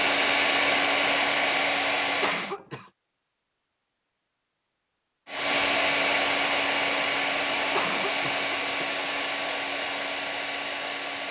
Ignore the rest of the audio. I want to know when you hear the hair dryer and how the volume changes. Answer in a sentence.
The hair dryer can be heard briefly from 0.0 to 2.5 s; and from 5.2 to 11.2 s, getting quieter.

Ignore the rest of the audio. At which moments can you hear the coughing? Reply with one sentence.
You can hear the coughing from 2.2 to 2.9 s and from 7.7 to 8.9 s.